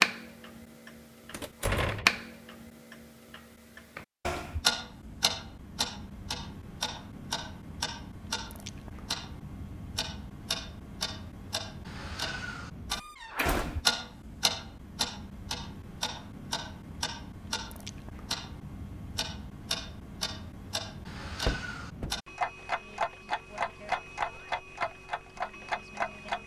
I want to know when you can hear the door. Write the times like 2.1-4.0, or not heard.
1.3-2.2, 12.9-13.8, 21.4-22.1.